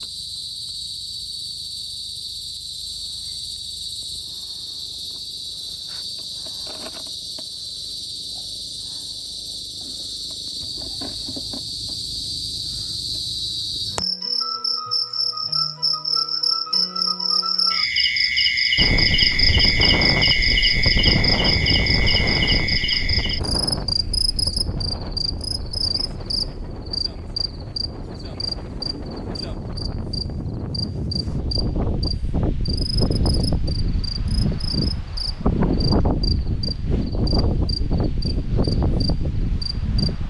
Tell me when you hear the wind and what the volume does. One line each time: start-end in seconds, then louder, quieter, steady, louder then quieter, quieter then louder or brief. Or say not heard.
18.8-40.2 quieter then louder.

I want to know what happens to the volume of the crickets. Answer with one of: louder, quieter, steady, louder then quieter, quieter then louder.
louder then quieter.